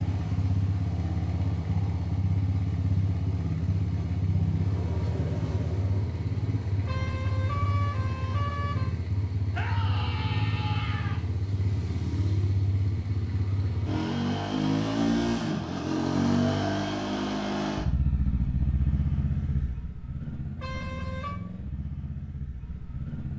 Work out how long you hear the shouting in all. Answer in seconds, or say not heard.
2 s.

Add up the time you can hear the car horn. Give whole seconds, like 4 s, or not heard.
3 s.